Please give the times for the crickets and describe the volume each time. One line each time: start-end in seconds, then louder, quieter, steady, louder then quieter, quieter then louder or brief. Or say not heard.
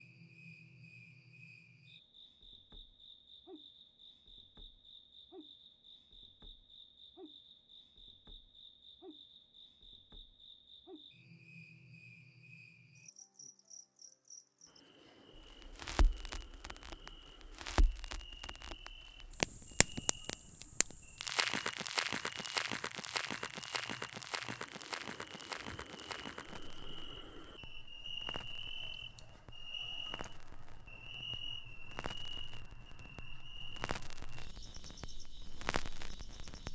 0.0-36.6 louder.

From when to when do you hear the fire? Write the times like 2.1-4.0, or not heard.
15.3-36.6.